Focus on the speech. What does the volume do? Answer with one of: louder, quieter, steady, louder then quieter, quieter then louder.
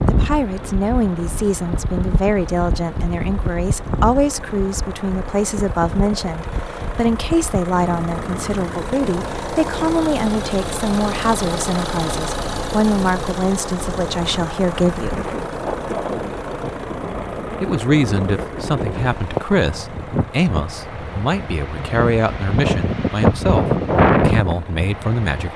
steady.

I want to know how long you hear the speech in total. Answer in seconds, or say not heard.
23 s.